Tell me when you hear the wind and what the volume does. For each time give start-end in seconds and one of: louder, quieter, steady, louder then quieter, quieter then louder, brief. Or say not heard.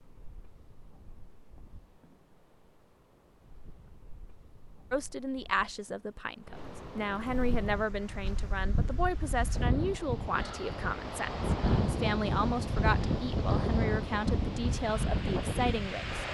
0.0-16.3 louder.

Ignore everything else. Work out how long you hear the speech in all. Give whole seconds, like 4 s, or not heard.
11 s.